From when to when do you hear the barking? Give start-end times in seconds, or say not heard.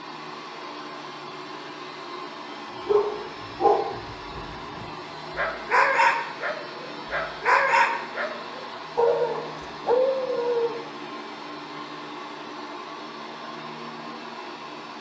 2.9-10.8.